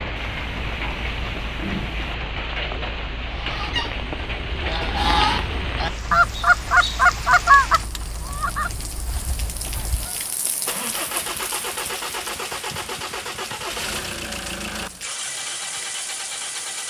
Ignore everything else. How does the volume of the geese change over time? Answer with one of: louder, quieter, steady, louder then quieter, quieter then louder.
louder then quieter.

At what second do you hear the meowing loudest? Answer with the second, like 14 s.
2 s.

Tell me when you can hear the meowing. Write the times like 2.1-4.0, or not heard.
0.1-2.1.